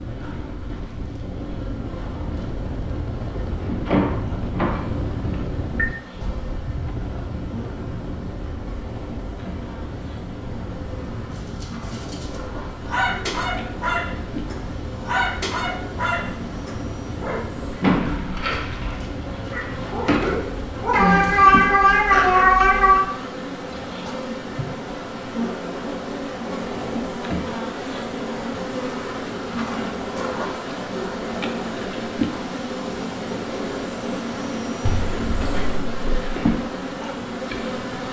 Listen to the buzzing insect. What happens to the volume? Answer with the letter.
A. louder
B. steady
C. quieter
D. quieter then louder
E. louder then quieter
A.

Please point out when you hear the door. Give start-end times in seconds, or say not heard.
3.9-5.8, 17.8-20.4, 34.9-36.3.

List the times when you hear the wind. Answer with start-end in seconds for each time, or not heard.
0.0-21.4.